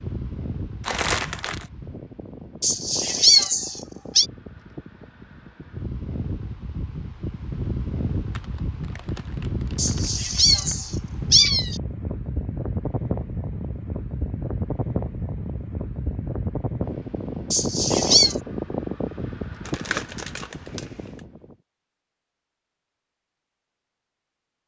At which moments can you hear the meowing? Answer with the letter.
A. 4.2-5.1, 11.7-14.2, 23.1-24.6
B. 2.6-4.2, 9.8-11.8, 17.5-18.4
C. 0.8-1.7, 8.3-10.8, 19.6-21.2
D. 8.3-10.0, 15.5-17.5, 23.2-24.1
B.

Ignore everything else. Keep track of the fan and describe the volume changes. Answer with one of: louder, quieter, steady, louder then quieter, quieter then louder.
louder.